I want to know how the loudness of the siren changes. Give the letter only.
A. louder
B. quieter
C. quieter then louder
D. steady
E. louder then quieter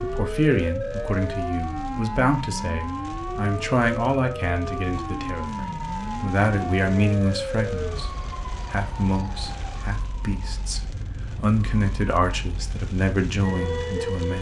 C.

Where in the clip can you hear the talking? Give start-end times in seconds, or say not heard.
0.0-14.3.